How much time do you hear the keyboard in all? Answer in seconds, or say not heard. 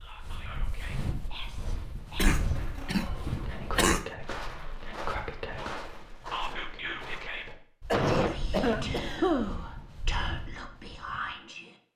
not heard.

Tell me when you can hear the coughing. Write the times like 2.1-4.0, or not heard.
2.1-4.0, 7.9-9.7.